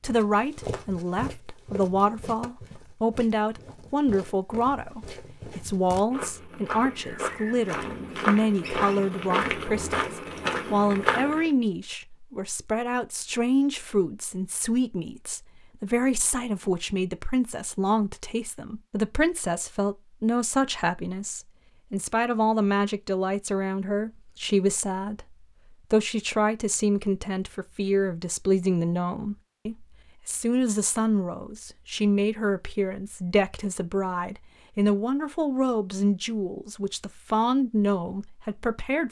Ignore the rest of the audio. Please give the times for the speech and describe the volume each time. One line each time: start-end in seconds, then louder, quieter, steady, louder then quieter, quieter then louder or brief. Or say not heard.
0.0-39.0 steady.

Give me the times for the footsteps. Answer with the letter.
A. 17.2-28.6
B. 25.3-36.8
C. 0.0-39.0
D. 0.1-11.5
D.